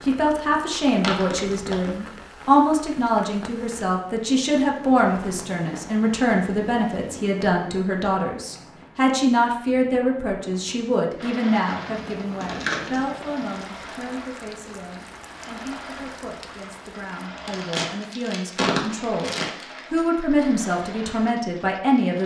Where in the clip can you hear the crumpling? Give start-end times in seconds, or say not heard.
1.0-1.9, 12.4-13.1, 17.4-20.1.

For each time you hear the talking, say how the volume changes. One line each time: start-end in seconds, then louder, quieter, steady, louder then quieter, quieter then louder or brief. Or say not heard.
0.1-22.2 quieter then louder.